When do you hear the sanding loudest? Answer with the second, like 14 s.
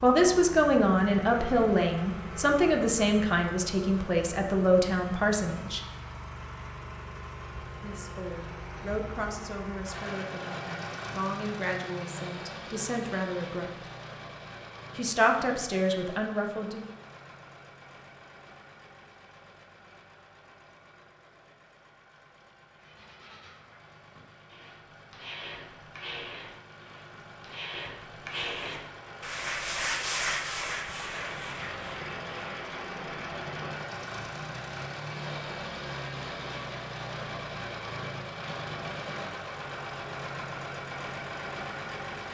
30 s.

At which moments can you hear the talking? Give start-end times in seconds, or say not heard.
0.0-5.8, 7.8-13.7, 14.9-16.9.